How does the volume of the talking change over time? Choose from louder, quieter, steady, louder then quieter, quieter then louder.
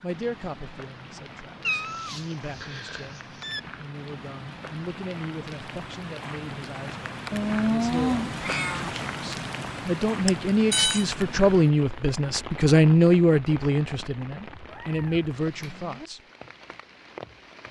louder.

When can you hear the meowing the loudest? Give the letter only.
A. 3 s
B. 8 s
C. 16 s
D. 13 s
B.